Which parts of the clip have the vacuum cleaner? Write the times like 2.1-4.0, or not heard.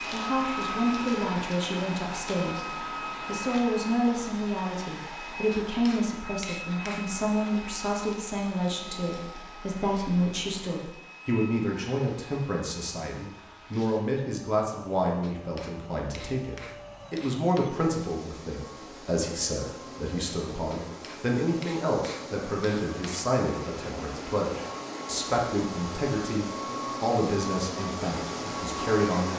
0.0-29.3.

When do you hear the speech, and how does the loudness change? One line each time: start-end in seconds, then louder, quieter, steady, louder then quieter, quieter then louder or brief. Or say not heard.
0.0-29.3 steady.